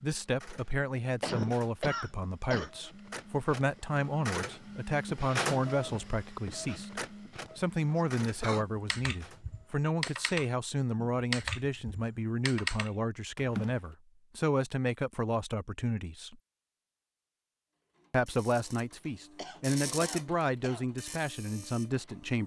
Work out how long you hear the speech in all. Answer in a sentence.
The speech can be heard for 21 seconds in total.